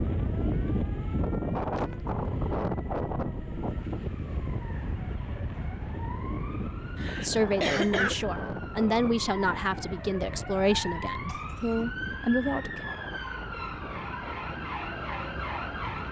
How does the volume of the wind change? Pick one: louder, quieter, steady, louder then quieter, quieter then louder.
quieter.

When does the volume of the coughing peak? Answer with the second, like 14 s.
8 s.